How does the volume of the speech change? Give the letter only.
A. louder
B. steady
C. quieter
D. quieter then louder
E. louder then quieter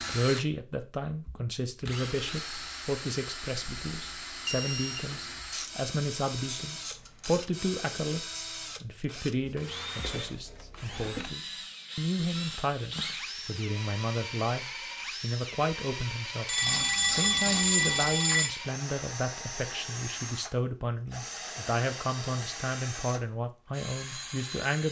B.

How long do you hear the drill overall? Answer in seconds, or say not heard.
25 s.